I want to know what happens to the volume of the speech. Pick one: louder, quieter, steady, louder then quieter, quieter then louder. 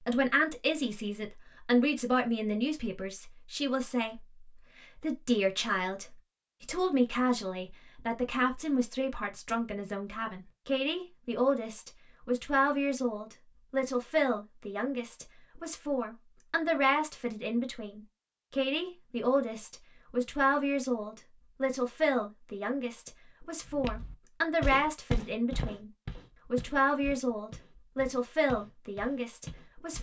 steady.